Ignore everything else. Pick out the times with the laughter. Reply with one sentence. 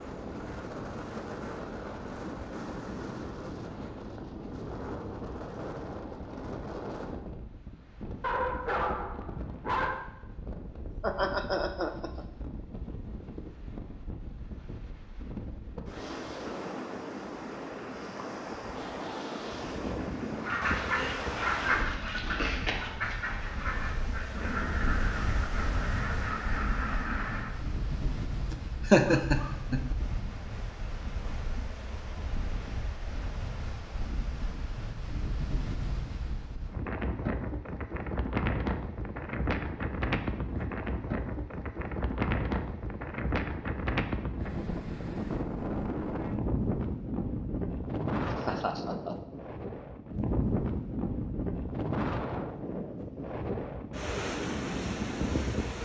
The laughter can be heard from 11.0 to 12.2 s, from 28.5 to 29.9 s and from 48.2 to 49.1 s.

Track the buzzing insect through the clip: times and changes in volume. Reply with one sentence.
The buzzing insect can't be heard in this clip.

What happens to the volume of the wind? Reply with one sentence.
The loudness of the wind goes up.